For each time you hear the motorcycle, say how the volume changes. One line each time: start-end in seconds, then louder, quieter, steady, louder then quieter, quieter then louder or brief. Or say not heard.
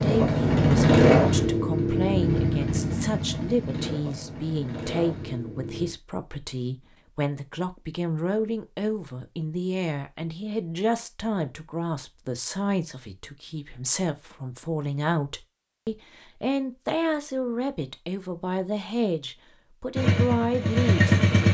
0.0-6.0 quieter
19.9-21.4 brief.